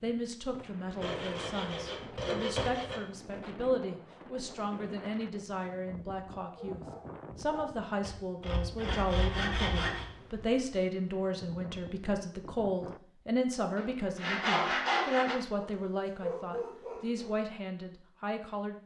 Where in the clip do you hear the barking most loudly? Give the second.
16 s.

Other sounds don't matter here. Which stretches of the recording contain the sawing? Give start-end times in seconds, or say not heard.
1.0-3.0, 8.1-10.1, 13.8-15.3.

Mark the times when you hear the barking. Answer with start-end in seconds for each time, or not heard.
6.5-7.7, 15.6-17.4.